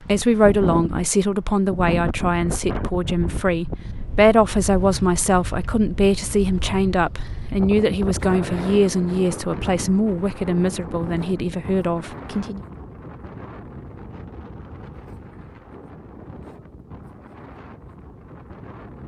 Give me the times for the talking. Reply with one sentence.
The talking can be heard from 0.0 to 12.6 s.